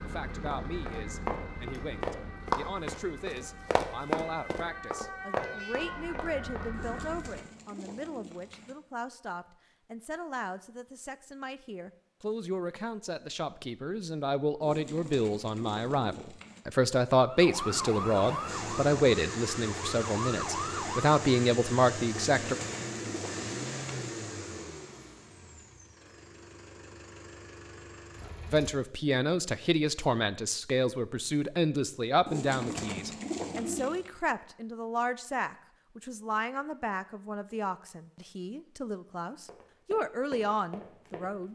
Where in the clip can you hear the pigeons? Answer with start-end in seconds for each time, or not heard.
6.7-8.8, 14.6-16.6, 22.1-23.9, 32.2-34.1.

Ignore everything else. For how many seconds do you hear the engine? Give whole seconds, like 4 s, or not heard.
10 s.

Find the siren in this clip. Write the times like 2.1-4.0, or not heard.
0.0-7.5, 17.1-21.2.